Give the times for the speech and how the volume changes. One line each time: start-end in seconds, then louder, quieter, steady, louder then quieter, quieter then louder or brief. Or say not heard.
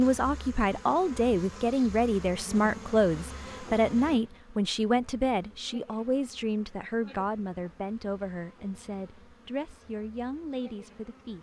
0.0-11.3 quieter.